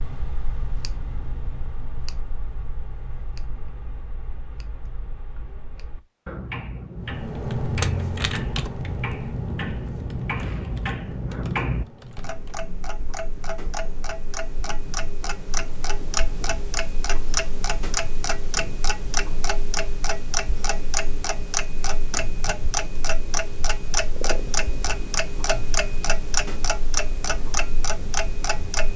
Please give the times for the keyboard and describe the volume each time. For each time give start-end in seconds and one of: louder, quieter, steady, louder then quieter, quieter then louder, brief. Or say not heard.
7.0-12.7 quieter.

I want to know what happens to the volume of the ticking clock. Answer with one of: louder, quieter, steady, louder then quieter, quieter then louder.
louder.